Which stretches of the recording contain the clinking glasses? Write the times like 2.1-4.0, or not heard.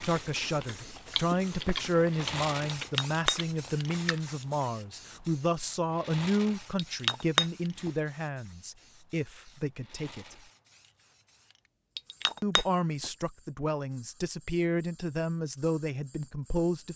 2.8-3.4, 6.8-7.9, 11.9-13.1.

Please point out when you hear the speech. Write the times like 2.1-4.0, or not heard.
0.0-10.3, 12.4-16.9.